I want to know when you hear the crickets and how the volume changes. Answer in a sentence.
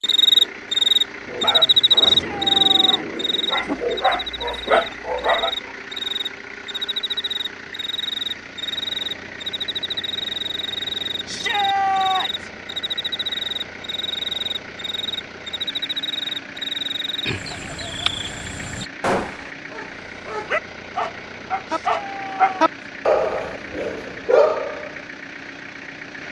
The crickets can be heard from 0.0 to 18.9 s, getting quieter.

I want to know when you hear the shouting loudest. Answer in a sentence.
The loudest moment of the shouting is at 12 seconds.